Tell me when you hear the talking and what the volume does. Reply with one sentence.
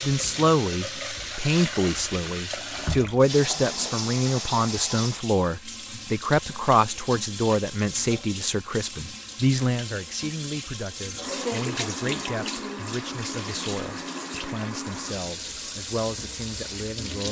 The talking can be heard from 0.0 to 17.2 s, getting quieter.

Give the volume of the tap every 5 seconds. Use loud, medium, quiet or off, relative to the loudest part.
loud, medium, loud, loud.